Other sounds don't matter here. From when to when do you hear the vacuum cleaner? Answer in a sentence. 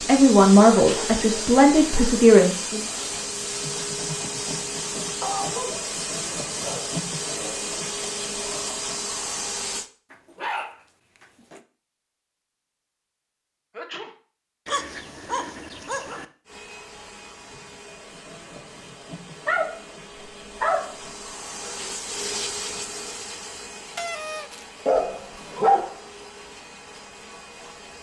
The vacuum cleaner can be heard from 0.0 to 9.9 s and from 16.4 to 27.9 s.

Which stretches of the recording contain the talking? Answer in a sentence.
The talking can be heard from 0.0 to 2.9 s.